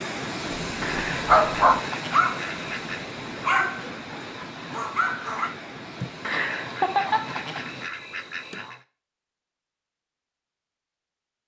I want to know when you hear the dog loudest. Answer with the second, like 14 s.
1 s.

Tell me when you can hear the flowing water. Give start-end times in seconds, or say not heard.
0.0-7.9.